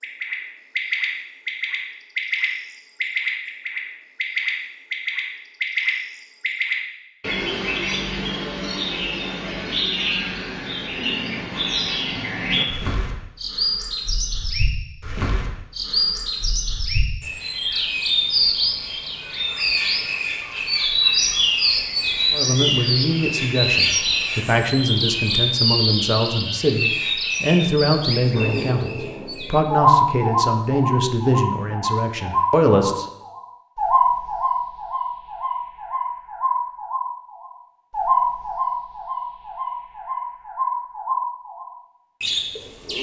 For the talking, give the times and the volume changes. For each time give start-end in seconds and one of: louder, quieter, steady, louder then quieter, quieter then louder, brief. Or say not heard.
22.3-33.0 steady.